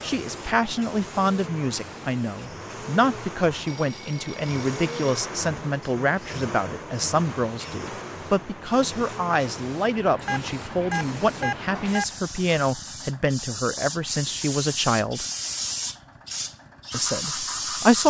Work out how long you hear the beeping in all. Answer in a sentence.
The beeping can be heard for 3 seconds in total.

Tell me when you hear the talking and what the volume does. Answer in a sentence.
The talking can be heard from 0.0 to 15.2 s, at a steady volume; and briefly from 16.9 to 18.0 s.